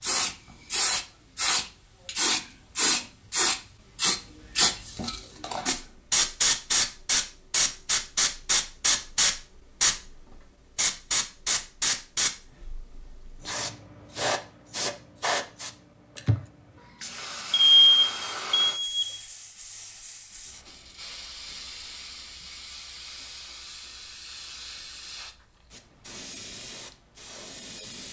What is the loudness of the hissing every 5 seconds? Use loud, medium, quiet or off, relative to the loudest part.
loud, loud, medium, medium, quiet, quiet.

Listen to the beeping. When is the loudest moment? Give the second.
18 s.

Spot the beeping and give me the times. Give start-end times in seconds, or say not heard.
17.5-19.2.